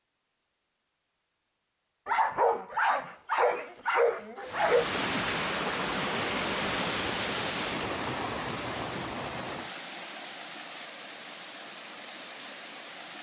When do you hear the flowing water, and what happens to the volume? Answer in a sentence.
The flowing water can be heard from 4.4 to 13.1 s, getting quieter.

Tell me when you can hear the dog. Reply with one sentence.
You can hear the dog from 2.0 to 4.9 s.